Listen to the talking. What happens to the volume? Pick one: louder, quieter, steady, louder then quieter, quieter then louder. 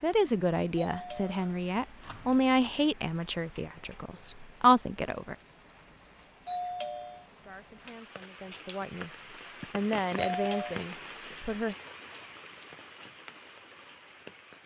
quieter then louder.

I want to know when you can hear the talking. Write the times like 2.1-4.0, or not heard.
0.0-5.3, 7.4-11.8.